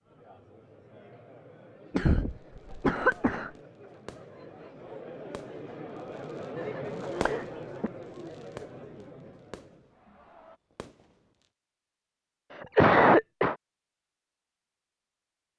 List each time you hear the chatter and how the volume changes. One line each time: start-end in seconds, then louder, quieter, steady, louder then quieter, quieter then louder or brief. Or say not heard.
0.0-10.6 louder then quieter.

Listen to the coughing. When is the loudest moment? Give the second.
13 s.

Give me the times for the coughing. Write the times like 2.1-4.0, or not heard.
1.9-3.5, 6.6-7.9, 12.5-13.6.